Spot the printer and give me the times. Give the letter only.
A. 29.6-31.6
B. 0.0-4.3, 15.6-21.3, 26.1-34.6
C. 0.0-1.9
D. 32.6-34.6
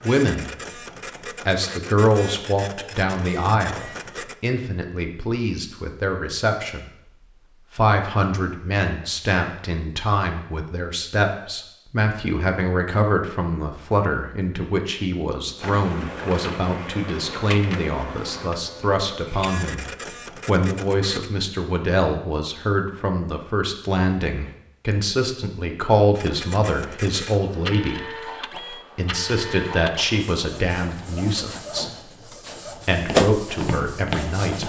B.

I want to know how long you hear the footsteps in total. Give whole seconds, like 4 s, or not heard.
2 s.